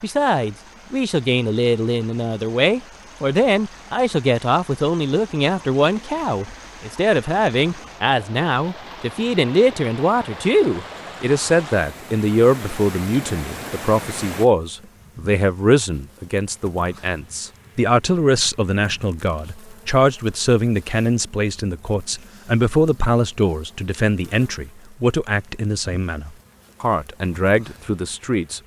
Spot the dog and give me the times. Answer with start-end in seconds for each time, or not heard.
not heard.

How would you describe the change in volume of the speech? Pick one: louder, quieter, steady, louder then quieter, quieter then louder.
steady.